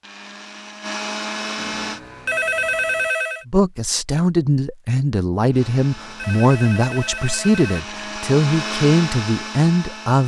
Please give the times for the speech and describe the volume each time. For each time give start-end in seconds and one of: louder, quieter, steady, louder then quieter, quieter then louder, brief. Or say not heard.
3.5-10.2 steady.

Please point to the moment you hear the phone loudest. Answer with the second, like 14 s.
3 s.